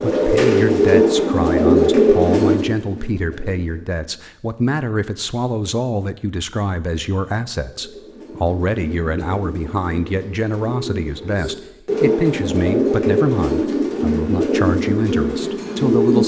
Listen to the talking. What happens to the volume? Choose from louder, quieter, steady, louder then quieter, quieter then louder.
steady.